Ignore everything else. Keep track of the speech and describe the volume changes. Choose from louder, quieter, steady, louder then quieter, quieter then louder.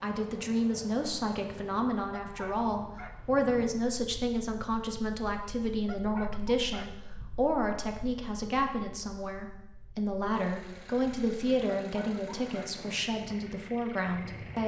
steady.